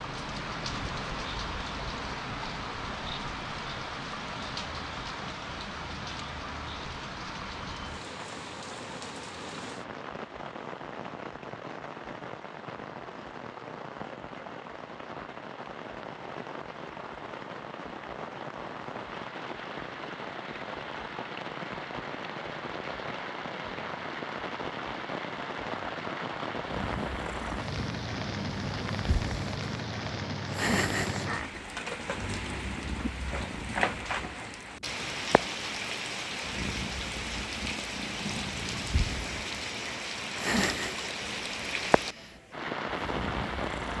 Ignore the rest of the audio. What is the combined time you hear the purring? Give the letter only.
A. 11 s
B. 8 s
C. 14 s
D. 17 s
D.